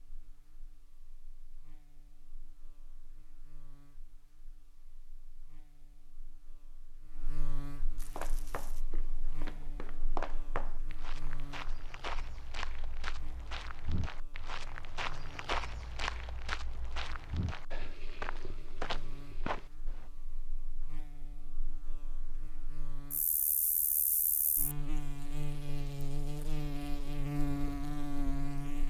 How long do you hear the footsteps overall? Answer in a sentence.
You can hear the footsteps for 12 seconds altogether.